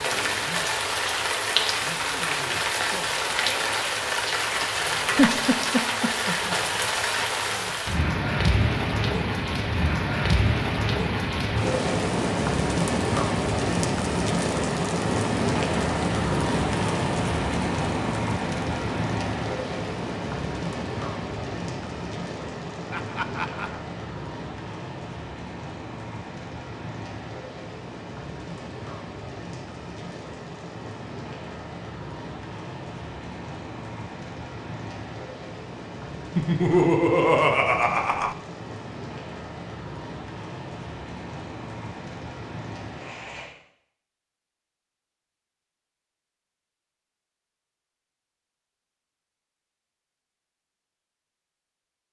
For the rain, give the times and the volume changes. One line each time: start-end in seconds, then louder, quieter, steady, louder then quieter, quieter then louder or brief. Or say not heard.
0.0-43.5 quieter.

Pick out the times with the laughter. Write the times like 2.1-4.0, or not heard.
5.2-6.2, 22.9-23.9, 36.4-38.4.